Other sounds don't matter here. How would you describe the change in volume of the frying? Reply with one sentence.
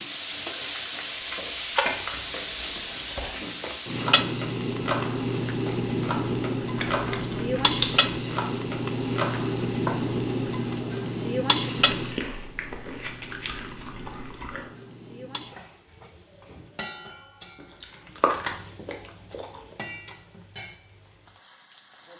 The volume of the frying goes down.